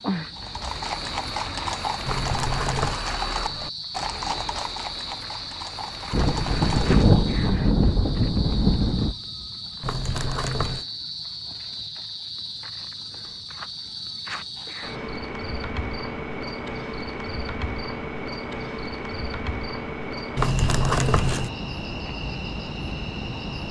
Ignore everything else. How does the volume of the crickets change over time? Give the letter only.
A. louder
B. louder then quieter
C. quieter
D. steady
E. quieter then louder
D.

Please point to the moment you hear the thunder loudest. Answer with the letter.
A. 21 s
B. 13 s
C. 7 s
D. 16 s
C.